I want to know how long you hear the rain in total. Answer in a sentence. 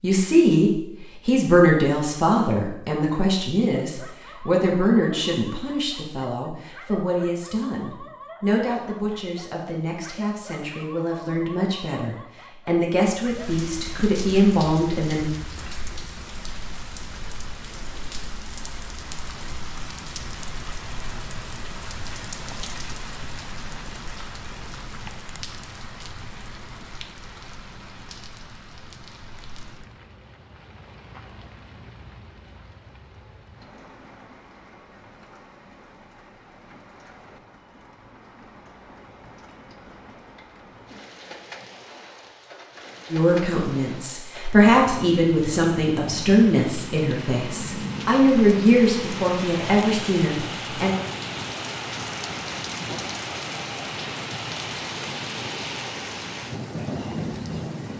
The rain can be heard for 45 seconds in total.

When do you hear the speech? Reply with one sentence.
You can hear the speech from 0.0 to 15.2 s and from 43.1 to 50.9 s.